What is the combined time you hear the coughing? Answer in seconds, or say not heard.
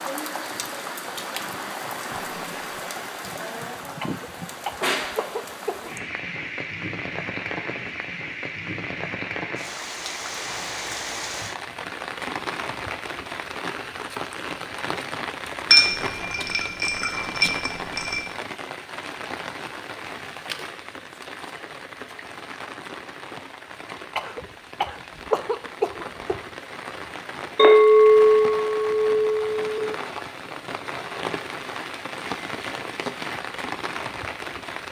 4 s.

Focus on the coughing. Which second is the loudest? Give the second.
25 s.